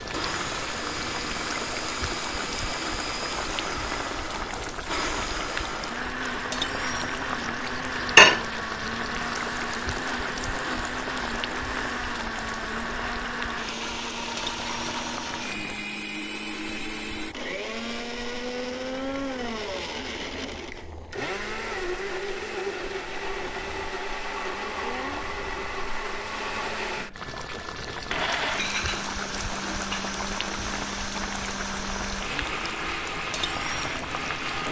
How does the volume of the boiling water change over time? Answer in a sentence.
The volume of the boiling water goes down, then up.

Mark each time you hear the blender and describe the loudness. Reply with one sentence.
The blender can be heard from 0.1 to 34.6 s, at a steady volume.